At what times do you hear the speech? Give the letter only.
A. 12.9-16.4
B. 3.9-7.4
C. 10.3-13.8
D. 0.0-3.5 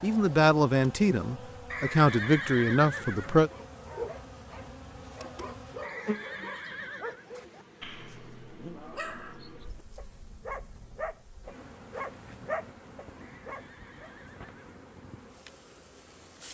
D.